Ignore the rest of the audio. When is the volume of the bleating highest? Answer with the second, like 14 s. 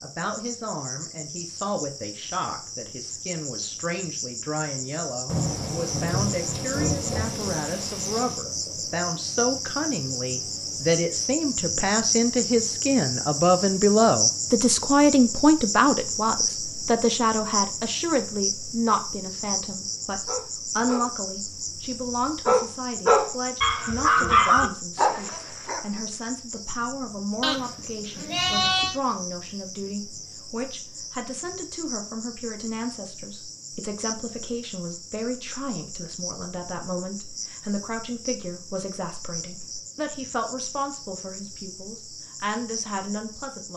29 s.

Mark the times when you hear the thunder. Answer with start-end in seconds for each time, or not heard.
5.2-8.4.